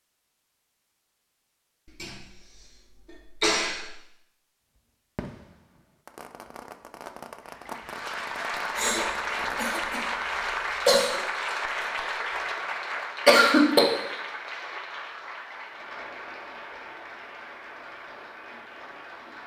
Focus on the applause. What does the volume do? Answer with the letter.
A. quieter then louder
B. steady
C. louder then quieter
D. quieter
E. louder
D.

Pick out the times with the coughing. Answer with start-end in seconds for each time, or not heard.
1.9-3.9, 8.8-11.2, 13.2-13.9.